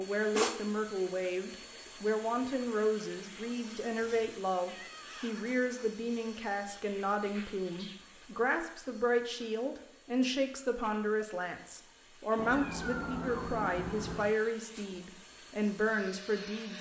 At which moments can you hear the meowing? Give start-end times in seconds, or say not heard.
4.0-5.9, 12.3-14.3.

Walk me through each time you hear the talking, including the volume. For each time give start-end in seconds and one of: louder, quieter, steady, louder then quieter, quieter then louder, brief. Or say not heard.
0.0-16.7 steady.